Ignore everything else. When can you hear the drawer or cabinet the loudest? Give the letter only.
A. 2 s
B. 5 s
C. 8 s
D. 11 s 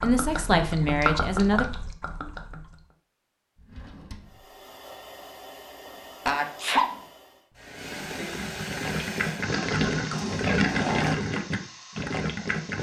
D.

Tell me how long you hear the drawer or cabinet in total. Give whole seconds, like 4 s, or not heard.
2 s.